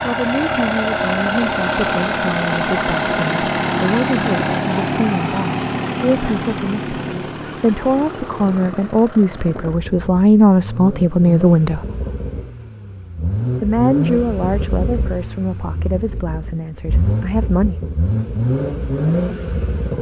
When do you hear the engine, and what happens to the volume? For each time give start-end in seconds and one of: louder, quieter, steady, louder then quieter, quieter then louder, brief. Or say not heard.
0.0-19.9 quieter then louder.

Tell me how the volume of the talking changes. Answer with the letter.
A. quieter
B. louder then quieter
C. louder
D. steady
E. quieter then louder
B.